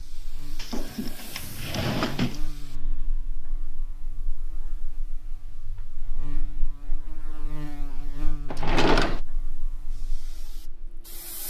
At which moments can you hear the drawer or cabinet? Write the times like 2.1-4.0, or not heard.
0.6-2.4, 8.5-9.2.